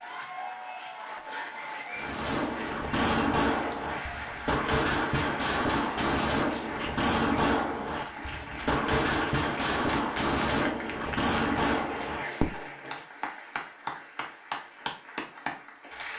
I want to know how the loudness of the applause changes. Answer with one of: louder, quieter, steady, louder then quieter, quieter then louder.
steady.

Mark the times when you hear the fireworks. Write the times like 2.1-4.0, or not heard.
1.9-12.6.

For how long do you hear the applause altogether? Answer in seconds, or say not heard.
16 s.